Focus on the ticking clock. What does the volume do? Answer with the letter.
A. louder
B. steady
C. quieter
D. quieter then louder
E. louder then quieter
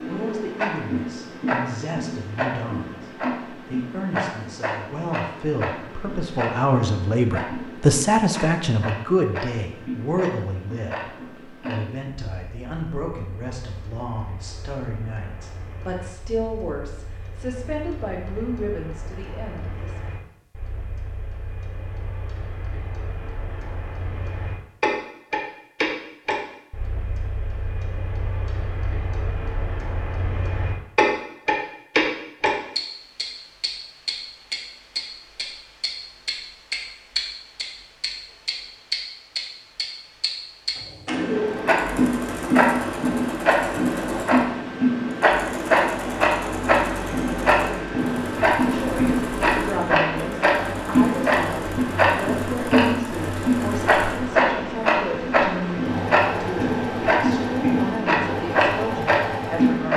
D.